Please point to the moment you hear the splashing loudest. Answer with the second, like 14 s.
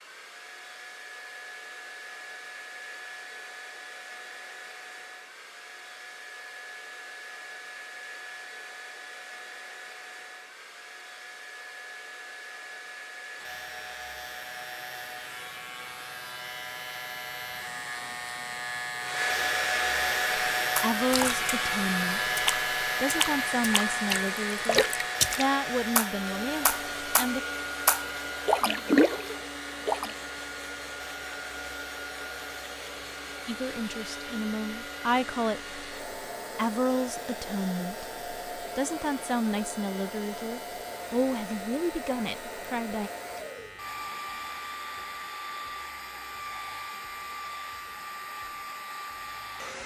29 s.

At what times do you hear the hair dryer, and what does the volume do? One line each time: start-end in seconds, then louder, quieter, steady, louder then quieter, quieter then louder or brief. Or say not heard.
0.0-49.8 louder then quieter.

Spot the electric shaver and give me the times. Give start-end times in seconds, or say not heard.
13.3-49.8.